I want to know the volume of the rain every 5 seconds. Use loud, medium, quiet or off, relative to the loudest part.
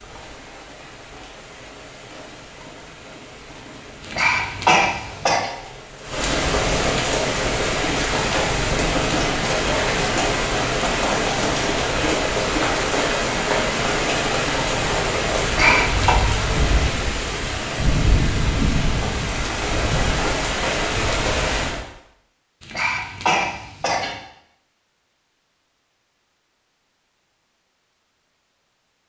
quiet, loud, loud, loud, loud, off.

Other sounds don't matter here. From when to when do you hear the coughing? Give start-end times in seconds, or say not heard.
4.0-5.5, 15.4-16.1, 22.6-24.1.